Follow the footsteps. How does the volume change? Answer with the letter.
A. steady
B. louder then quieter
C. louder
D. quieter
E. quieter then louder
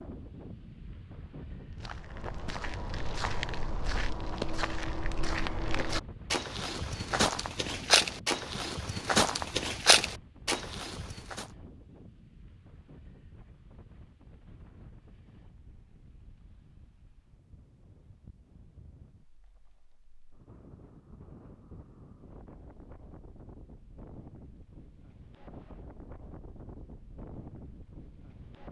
C.